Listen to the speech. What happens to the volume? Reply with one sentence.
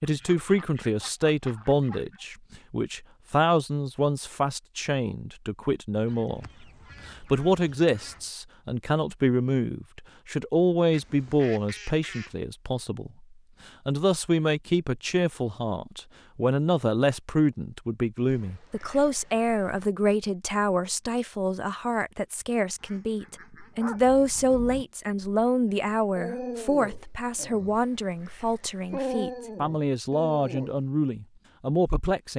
The volume of the speech stays about the same.